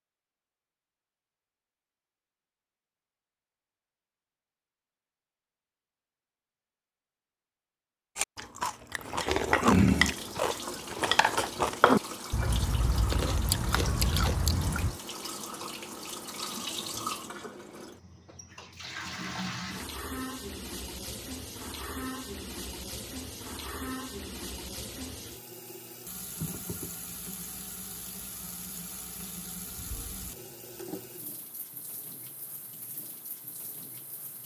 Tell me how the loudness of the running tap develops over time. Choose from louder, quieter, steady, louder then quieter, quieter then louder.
quieter.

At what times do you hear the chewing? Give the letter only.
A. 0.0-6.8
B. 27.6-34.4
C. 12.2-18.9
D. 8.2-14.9
D.